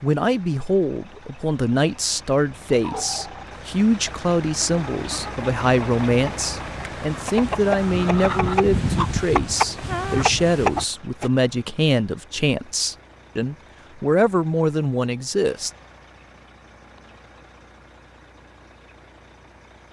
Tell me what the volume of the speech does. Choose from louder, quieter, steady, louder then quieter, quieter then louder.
steady.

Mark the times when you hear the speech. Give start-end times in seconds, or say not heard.
0.0-15.7.